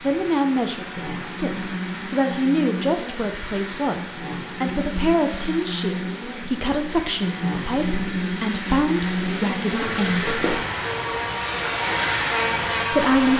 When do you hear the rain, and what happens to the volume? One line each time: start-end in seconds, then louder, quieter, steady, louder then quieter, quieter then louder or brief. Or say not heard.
0.0-13.3 louder.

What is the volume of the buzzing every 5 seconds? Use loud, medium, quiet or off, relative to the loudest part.
medium, loud, loud.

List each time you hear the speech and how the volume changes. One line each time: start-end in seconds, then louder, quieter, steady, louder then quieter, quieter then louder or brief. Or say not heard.
0.0-10.5 steady
12.9-13.3 brief.